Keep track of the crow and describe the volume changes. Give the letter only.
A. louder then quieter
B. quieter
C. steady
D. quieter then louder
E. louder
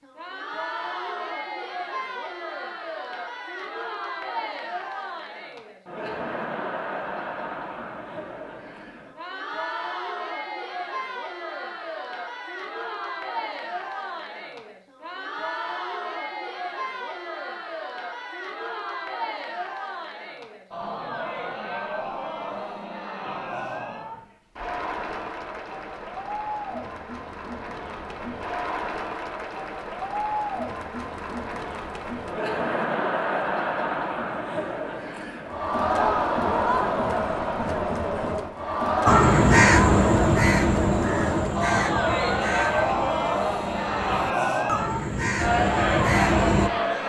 D.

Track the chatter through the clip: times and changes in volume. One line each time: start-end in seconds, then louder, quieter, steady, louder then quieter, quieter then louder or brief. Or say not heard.
0.0-47.0 louder.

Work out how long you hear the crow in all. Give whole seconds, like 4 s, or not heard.
8 s.